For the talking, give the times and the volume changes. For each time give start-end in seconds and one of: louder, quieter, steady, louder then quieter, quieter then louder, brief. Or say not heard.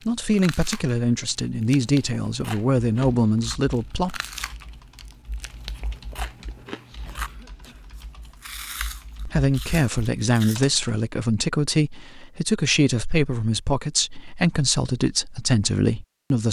0.1-4.2 steady
9.2-16.4 steady.